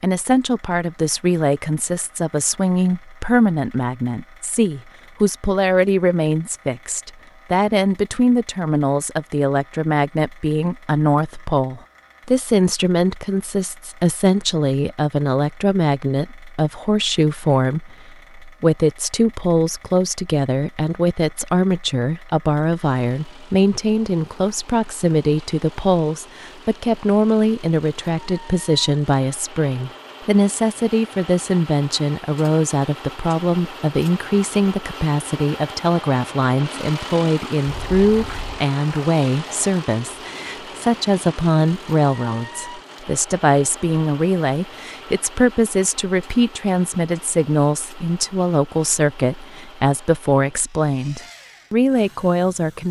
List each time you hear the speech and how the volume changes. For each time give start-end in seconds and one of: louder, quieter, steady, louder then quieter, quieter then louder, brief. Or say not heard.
0.0-52.8 steady.